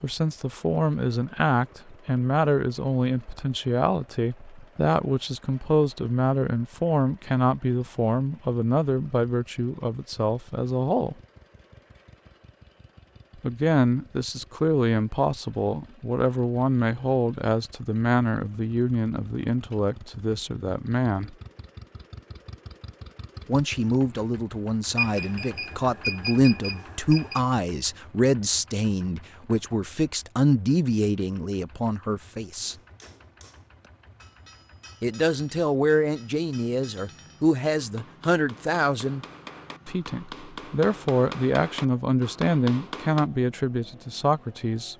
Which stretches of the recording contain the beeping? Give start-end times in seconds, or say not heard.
24.9-27.4.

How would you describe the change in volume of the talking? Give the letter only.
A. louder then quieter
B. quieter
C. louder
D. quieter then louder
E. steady
E.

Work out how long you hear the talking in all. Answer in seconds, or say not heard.
38 s.